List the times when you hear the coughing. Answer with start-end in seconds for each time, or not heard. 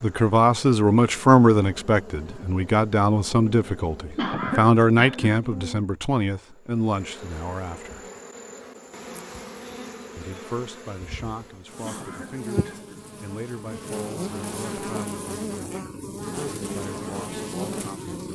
4.2-5.4, 11.8-13.1.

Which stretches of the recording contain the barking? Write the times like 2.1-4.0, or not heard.
not heard.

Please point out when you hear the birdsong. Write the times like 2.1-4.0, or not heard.
not heard.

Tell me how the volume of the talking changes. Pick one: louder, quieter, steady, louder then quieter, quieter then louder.
quieter.